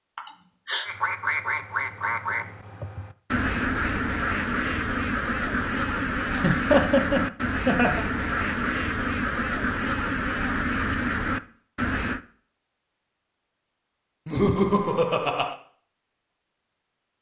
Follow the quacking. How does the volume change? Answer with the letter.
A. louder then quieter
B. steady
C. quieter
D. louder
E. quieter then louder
B.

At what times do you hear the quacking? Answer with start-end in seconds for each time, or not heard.
0.8-12.2.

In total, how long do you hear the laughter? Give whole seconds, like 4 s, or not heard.
4 s.